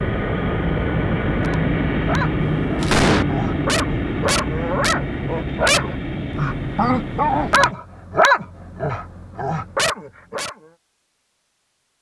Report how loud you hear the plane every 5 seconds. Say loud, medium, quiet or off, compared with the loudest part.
loud, medium, off.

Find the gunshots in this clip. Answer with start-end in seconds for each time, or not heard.
2.4-3.2.